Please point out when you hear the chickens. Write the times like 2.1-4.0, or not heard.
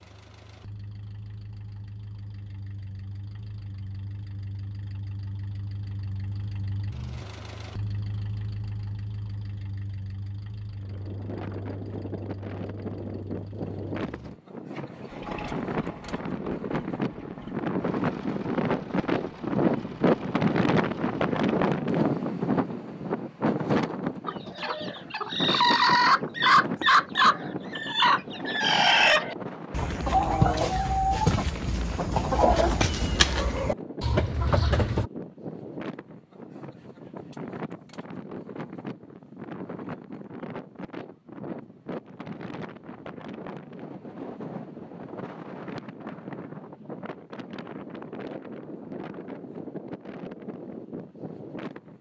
24.2-35.1.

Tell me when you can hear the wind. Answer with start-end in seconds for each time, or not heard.
10.8-51.9.